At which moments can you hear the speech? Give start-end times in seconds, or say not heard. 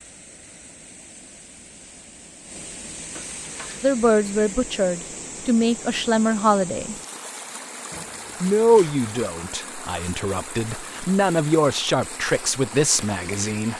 3.8-7.0, 8.4-13.7.